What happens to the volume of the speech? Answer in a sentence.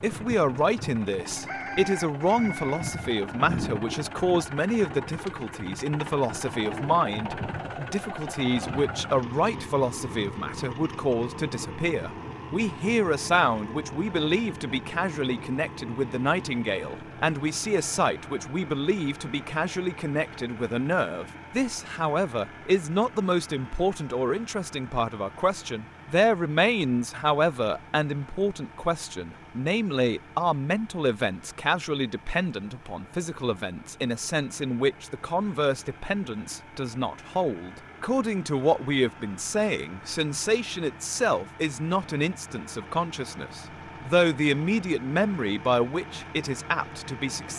The volume of the speech stays about the same.